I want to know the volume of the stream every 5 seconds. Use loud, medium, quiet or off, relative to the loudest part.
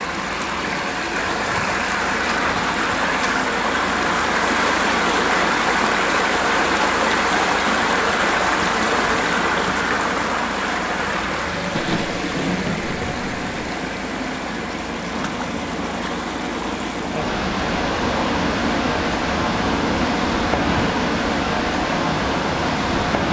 loud, loud, medium, medium, loud.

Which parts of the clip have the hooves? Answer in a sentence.
The hooves can't be heard in this clip.